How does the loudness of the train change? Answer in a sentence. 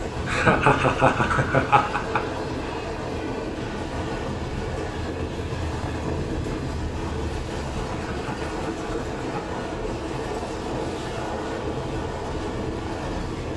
The loudness of the train stays about the same.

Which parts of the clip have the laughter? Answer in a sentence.
The laughter can be heard from 0.2 to 2.2 s and from 7.9 to 9.6 s.